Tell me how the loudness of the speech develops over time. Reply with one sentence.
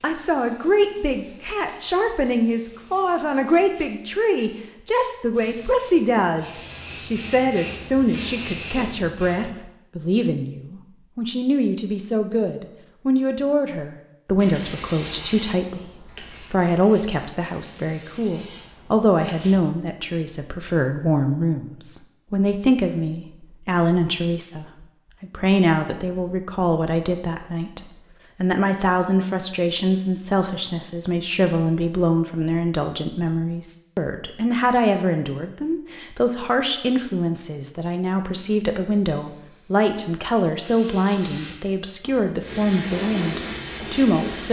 The loudness of the speech stays about the same.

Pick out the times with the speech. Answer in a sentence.
The speech can be heard from 0.0 to 44.4 s.